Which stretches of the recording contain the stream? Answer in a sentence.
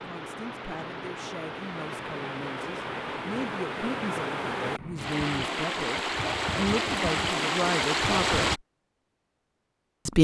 The stream can be heard from 0.0 to 8.6 s.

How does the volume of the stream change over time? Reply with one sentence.
The volume of the stream goes up.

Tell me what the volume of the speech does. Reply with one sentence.
The loudness of the speech goes up.